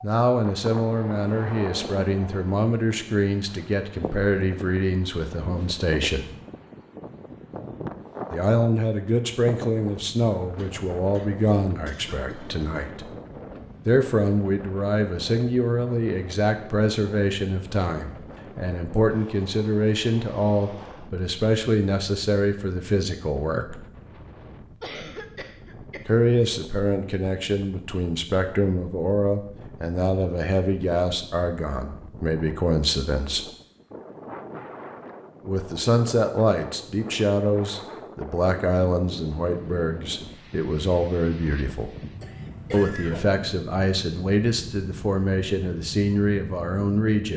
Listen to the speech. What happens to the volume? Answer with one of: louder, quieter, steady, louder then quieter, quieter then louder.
steady.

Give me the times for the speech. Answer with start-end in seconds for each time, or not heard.
0.0-6.3, 8.3-13.1, 13.8-23.8, 26.1-33.5, 35.5-41.9, 42.7-47.3.